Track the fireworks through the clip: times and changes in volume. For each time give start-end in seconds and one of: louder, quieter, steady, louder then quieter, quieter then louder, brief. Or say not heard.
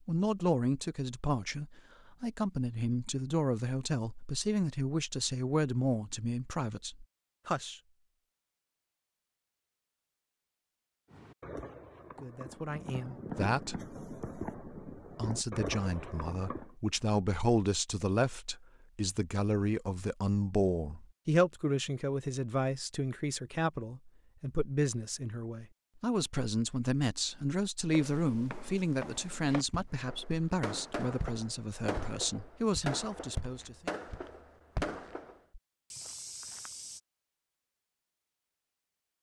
11.1-16.8 louder
29.9-35.4 steady.